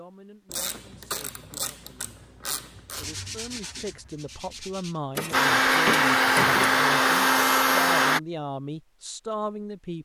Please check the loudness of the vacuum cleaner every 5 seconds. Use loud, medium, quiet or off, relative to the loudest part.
off, loud.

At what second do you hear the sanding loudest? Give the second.
3 s.